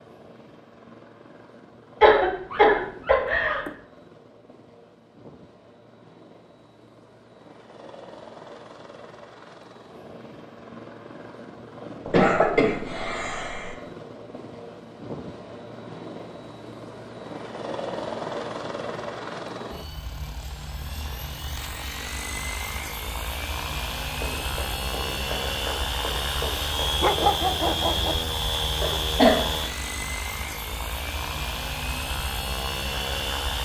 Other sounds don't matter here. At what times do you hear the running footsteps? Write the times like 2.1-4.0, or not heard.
24.1-27.4.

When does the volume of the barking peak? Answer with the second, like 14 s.
27 s.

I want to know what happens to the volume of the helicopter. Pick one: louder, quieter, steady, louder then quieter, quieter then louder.
louder.